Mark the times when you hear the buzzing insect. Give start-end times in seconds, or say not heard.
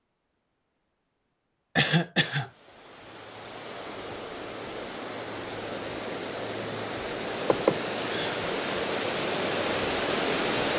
not heard.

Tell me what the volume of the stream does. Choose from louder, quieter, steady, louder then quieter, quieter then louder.
louder.